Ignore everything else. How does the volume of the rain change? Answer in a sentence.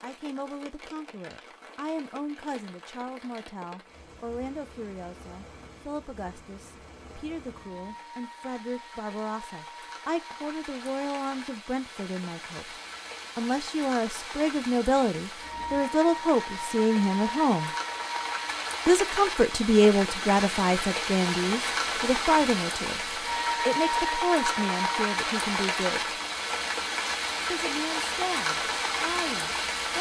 The loudness of the rain goes up.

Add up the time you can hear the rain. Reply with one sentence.
You can hear the rain for 30 seconds altogether.